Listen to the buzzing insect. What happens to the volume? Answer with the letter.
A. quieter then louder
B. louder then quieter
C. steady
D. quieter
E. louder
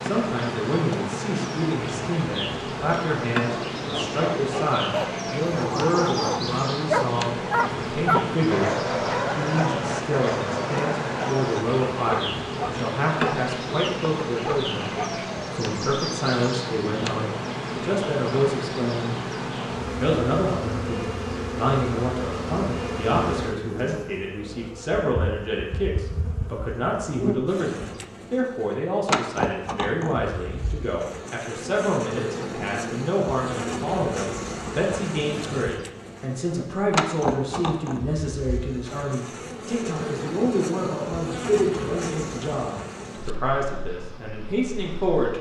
C.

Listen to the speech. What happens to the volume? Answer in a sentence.
The volume of the speech stays about the same.